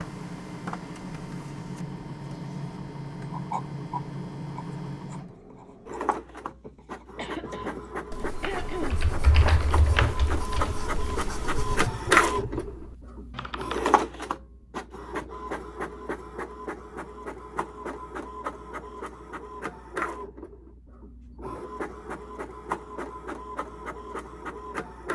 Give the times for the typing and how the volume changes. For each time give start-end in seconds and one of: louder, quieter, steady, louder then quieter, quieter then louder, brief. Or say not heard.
8.3-13.9 quieter.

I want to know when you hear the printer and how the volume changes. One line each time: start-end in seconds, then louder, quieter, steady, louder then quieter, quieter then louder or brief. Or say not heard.
0.0-25.1 louder then quieter.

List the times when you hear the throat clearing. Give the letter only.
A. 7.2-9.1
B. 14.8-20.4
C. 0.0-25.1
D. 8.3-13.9
A.